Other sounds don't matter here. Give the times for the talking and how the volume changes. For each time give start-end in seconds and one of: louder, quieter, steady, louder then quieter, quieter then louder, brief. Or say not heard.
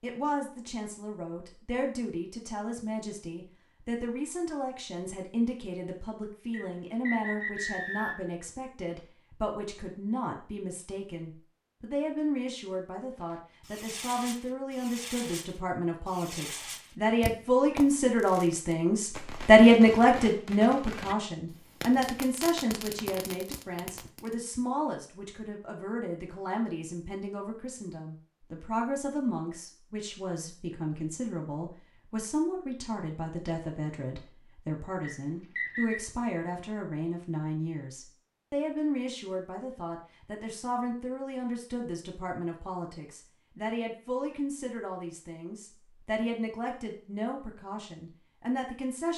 0.0-49.1 louder then quieter.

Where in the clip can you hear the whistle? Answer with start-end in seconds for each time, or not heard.
6.5-8.3, 35.0-36.0.